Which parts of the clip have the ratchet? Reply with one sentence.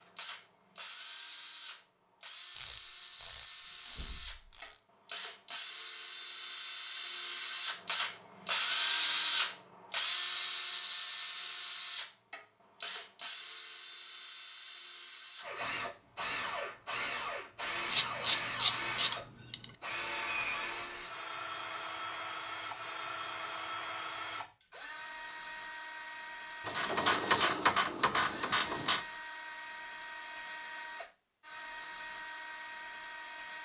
The ratchet can be heard from 2.5 to 4.8 s, from 17.9 to 19.6 s and from 26.6 to 29.0 s.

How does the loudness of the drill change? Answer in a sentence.
The volume of the drill goes up, then down.